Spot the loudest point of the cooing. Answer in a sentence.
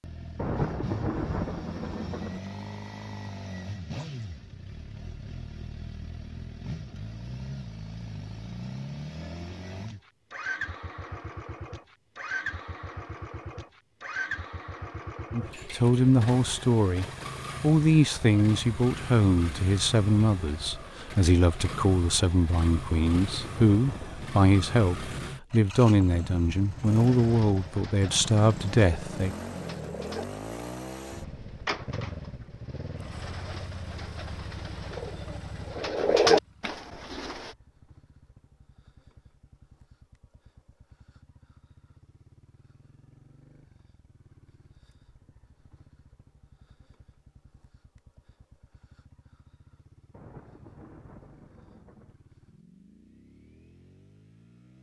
The volume of the cooing peaks at 36 seconds.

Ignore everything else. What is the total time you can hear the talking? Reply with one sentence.
You can hear the talking for 14 seconds altogether.